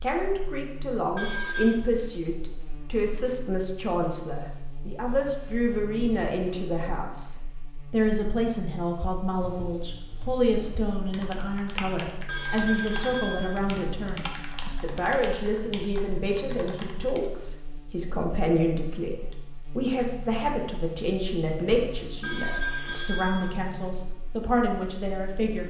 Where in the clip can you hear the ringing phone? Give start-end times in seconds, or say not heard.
1.1-1.9, 12.2-13.6, 22.2-23.6.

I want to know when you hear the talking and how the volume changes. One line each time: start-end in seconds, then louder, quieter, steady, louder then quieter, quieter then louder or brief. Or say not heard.
0.0-25.6 steady.